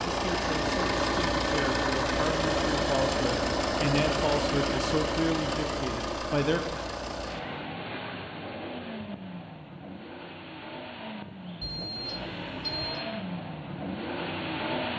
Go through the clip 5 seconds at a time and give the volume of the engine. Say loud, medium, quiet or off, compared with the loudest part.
loud, medium, medium.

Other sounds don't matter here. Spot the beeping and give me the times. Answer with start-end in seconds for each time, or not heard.
11.6-13.1.